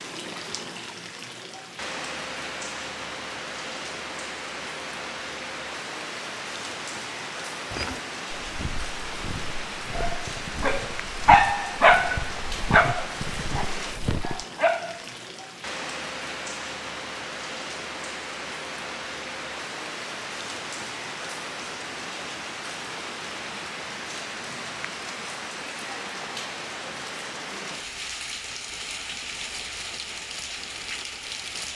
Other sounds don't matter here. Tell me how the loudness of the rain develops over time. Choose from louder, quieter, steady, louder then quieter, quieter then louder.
steady.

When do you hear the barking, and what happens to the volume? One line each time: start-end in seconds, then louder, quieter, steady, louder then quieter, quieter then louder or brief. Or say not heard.
9.9-15.1 louder then quieter.